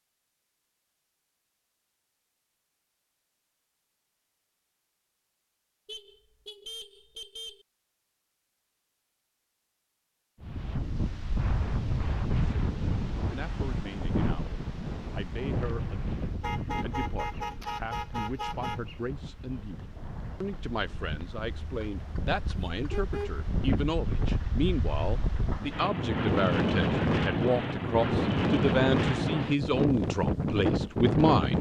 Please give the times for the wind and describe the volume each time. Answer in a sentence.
The wind can be heard from 10.4 to 31.5 s, getting quieter then louder.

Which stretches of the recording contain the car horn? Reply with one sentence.
You can hear the car horn from 5.8 to 7.7 s, from 16.4 to 18.9 s and from 21.5 to 23.4 s.